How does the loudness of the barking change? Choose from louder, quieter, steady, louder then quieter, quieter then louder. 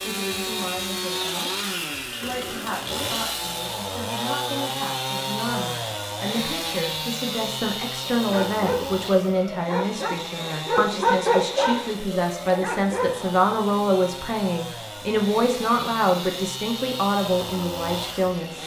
louder then quieter.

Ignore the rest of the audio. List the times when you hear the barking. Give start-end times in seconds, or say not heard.
8.0-13.4.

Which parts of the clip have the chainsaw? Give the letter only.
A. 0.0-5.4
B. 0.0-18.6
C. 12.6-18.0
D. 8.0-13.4
B.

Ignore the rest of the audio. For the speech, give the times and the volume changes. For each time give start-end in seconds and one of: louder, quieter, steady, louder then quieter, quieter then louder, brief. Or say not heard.
0.0-18.6 louder.